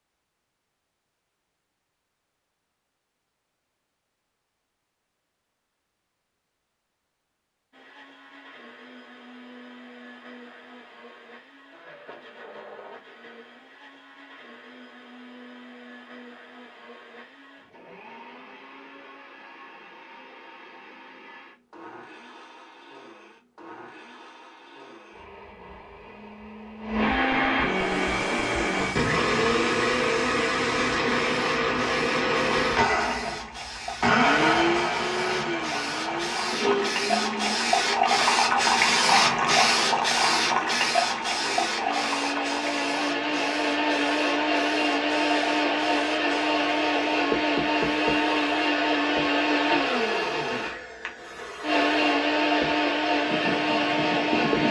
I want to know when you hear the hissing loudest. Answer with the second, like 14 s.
39 s.